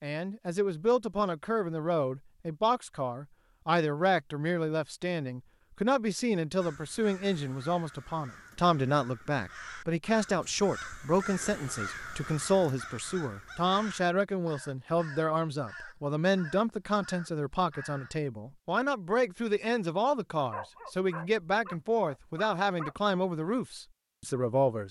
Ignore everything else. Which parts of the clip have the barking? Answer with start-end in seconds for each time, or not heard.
20.5-22.9.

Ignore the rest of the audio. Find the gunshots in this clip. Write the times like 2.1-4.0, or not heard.
not heard.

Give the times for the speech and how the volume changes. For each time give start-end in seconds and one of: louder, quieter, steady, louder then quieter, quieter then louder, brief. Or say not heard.
0.0-24.8 steady.